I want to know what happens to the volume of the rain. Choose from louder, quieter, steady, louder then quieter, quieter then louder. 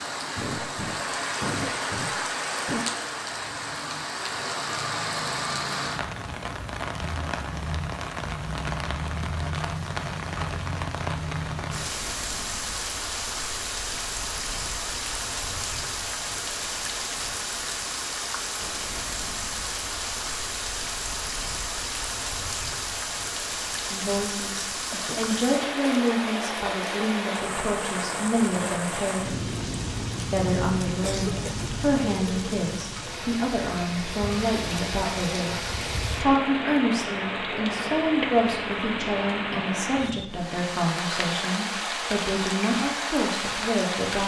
steady.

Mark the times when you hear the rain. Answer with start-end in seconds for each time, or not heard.
0.0-44.2.